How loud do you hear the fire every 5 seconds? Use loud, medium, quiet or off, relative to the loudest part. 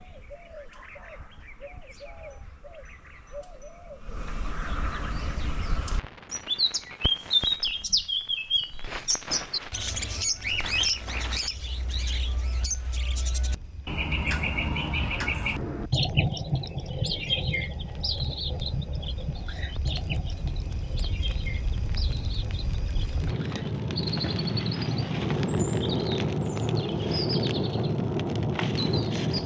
off, quiet, quiet, quiet, medium, loud.